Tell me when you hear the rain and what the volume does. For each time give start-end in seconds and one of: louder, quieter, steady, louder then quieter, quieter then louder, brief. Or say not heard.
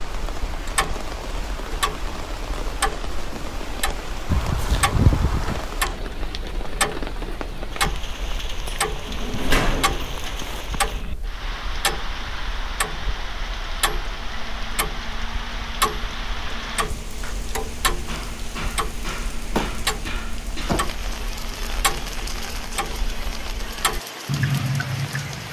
0.0-25.4 steady.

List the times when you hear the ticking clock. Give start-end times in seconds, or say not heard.
0.0-25.4.